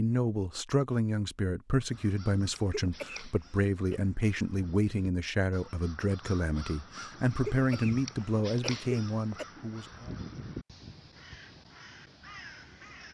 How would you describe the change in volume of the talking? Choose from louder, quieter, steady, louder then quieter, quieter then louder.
steady.